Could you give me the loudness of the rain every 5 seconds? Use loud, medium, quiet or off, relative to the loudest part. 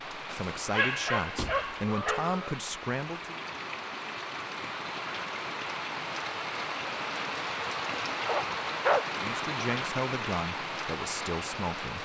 medium, loud, loud.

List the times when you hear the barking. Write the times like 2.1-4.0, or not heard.
0.3-2.4, 8.2-9.1.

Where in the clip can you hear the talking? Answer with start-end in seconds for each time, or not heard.
0.2-3.4, 9.1-11.9.